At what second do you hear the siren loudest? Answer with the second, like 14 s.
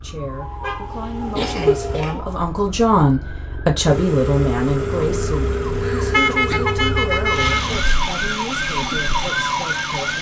9 s.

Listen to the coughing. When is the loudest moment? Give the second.
2 s.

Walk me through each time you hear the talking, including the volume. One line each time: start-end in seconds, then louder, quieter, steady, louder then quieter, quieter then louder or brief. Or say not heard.
0.0-10.1 louder then quieter.